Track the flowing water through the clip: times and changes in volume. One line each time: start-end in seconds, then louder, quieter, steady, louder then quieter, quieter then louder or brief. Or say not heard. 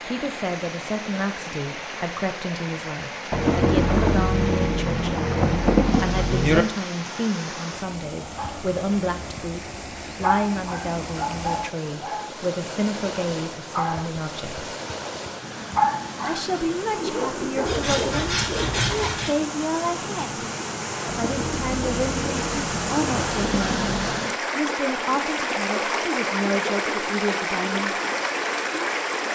0.0-29.3 louder.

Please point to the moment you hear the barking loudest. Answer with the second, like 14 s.
16 s.